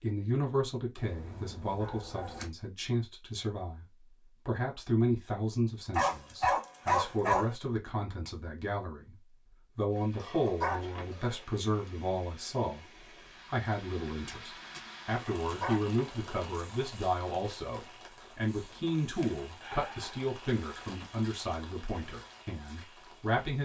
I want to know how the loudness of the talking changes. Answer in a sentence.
The volume of the talking stays about the same.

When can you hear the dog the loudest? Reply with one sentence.
The volume of the dog peaks at 7 seconds.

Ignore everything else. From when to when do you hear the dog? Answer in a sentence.
The dog can be heard from 0.9 to 2.5 s, from 6.0 to 7.5 s, from 10.2 to 11.4 s, from 15.2 to 16.2 s and from 19.2 to 20.1 s.